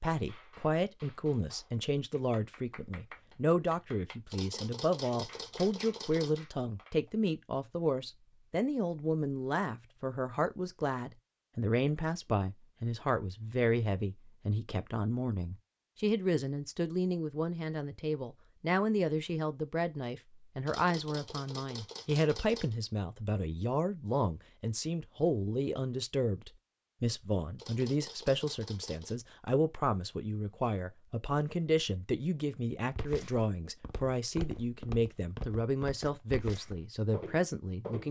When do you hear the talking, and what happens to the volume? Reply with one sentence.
The talking can be heard from 0.0 to 38.0 s, at a steady volume.